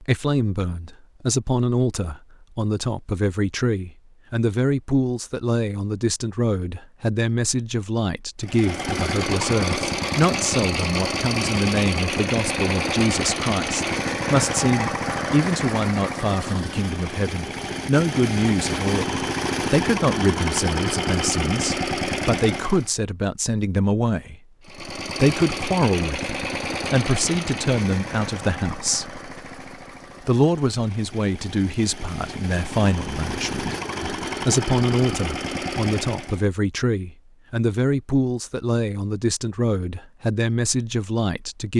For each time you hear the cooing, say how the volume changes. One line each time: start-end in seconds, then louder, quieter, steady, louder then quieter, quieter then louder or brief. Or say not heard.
not heard.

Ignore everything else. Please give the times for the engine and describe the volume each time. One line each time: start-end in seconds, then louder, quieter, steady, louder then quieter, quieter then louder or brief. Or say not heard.
8.4-22.9 steady
24.6-36.5 quieter then louder.